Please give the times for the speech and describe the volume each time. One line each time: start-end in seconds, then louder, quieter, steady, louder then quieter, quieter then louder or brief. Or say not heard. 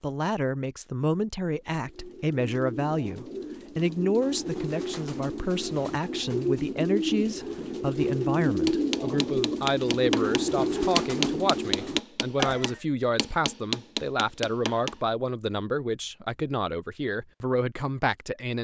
0.0-18.5 steady.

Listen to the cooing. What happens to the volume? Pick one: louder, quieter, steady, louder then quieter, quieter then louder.
louder.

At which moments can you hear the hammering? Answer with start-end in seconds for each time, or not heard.
8.7-15.0.